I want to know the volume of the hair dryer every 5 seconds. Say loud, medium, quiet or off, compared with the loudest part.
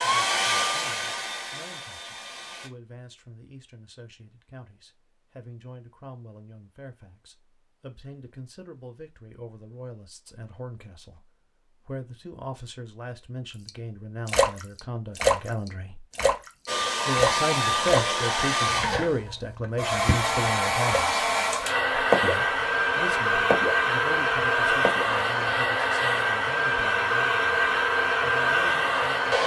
medium, off, off, loud, loud, loud.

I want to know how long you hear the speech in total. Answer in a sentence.
The speech can be heard for 27 seconds in total.